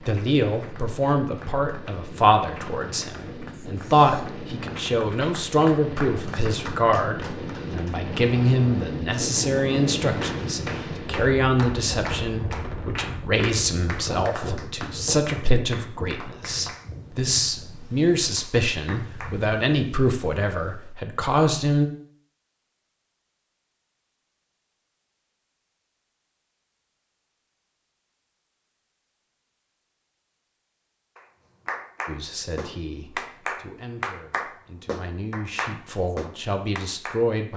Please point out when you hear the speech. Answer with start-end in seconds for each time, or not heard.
0.1-21.9, 32.0-37.5.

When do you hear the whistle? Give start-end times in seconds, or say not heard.
not heard.